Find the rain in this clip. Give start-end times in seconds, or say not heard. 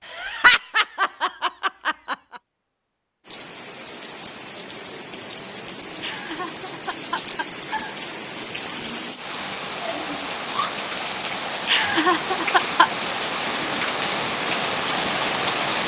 3.2-15.8.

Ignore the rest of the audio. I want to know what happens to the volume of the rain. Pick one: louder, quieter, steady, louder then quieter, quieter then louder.
louder.